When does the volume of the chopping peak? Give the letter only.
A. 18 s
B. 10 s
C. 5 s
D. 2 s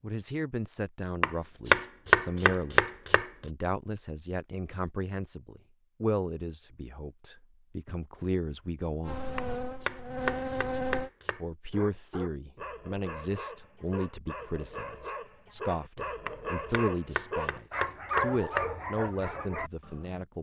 D.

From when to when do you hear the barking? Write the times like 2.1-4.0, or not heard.
11.7-20.2.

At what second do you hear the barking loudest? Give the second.
18 s.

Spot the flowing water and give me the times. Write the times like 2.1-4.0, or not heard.
not heard.